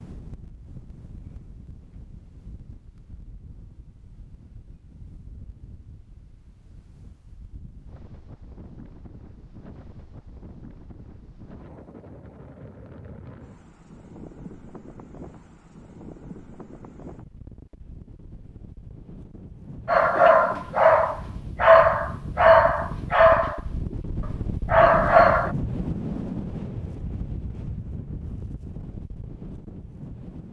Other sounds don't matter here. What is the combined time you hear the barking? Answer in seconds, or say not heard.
6 s.